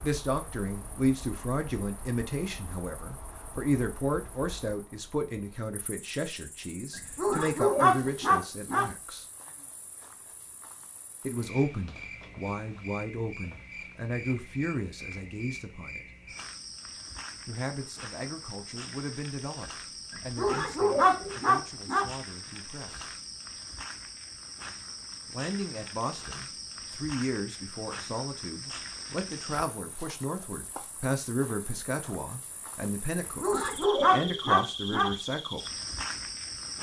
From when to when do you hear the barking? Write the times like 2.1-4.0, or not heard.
6.9-8.9, 20.1-22.1, 33.1-35.1.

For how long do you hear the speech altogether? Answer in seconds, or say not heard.
30 s.